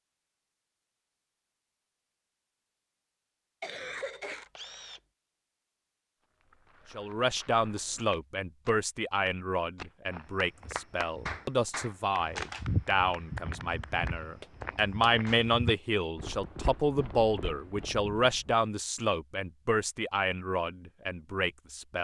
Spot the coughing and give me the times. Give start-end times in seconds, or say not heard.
3.6-4.5.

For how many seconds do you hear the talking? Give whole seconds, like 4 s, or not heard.
15 s.